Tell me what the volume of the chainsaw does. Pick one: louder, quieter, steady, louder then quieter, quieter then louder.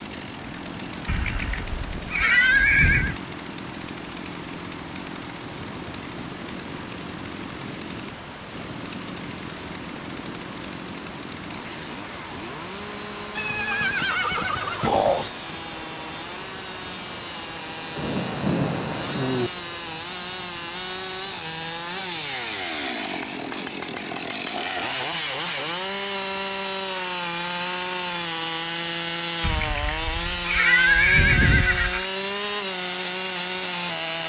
louder.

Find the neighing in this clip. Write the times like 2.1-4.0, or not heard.
1.1-3.1, 13.3-15.3, 29.4-32.1.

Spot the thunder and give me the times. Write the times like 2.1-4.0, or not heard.
17.9-19.5.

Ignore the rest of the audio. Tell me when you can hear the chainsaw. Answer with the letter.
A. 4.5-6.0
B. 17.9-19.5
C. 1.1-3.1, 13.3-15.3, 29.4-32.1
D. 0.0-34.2
D.